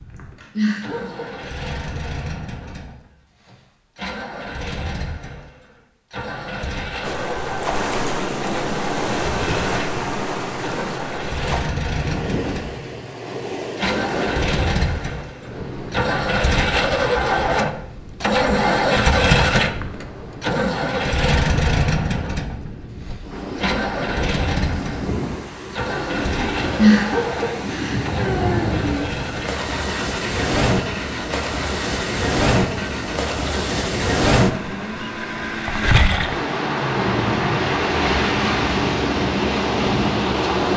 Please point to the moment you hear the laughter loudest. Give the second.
27 s.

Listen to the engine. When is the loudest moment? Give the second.
19 s.